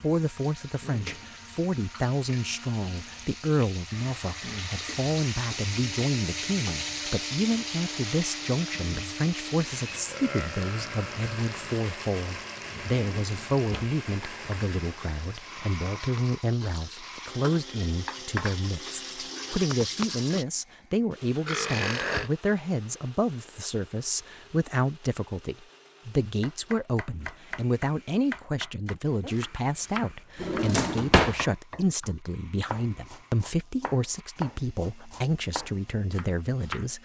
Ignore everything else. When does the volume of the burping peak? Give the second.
22 s.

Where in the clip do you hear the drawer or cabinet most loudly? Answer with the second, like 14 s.
31 s.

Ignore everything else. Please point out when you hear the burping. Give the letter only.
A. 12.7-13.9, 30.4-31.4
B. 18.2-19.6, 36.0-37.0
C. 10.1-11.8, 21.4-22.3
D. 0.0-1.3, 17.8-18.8
C.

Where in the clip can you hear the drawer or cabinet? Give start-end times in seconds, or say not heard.
12.7-13.9, 30.4-31.4.